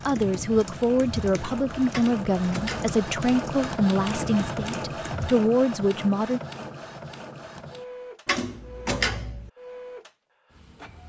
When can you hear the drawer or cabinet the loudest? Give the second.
9 s.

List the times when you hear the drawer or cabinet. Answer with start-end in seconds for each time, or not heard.
1.9-2.9, 8.2-9.5.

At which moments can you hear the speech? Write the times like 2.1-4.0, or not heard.
0.1-6.4.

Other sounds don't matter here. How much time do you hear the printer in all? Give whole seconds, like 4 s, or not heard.
11 s.